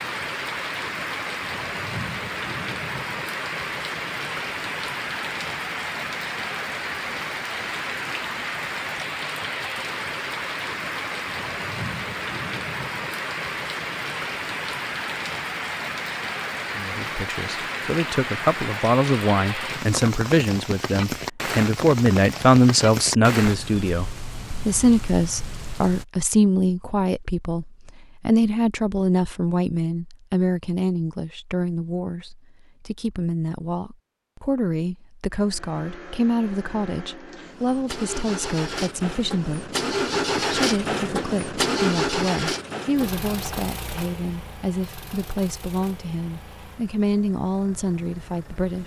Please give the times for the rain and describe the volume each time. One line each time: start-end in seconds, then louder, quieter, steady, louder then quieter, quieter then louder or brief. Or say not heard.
0.0-26.1 steady.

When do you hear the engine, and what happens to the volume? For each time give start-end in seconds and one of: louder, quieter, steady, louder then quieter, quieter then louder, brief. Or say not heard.
35.3-48.8 louder then quieter.